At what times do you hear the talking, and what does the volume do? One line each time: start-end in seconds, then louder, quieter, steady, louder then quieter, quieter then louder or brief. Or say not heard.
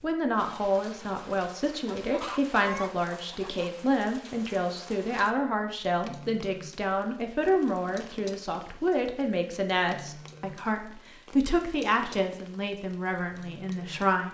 0.0-14.2 steady.